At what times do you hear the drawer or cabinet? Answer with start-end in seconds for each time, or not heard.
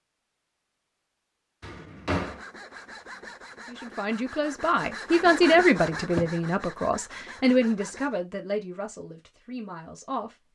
1.6-2.4, 5.9-6.3.